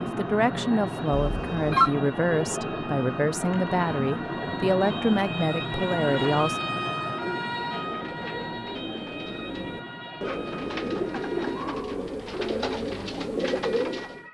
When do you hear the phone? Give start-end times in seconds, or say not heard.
1.1-1.9.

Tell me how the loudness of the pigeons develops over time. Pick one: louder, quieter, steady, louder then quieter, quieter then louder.
louder.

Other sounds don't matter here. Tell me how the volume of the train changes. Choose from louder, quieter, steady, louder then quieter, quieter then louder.
quieter.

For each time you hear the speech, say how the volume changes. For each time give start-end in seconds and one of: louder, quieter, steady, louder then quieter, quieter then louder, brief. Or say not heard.
0.0-6.6 steady.